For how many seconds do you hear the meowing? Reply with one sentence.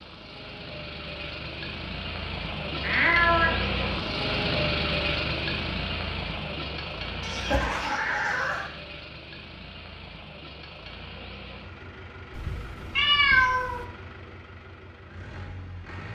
The meowing can be heard for 4 seconds in total.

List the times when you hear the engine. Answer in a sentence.
The engine can be heard from 0.0 to 16.0 s.